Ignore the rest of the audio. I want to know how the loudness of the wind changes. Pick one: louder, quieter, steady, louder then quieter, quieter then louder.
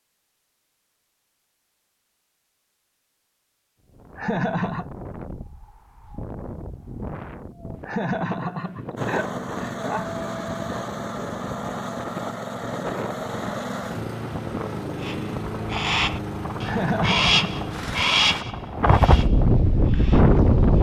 louder.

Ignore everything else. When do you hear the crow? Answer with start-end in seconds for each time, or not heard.
15.0-20.7.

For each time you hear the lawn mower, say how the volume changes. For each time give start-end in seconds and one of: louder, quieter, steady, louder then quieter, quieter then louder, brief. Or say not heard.
8.9-18.4 steady.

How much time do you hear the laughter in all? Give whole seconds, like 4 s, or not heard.
4 s.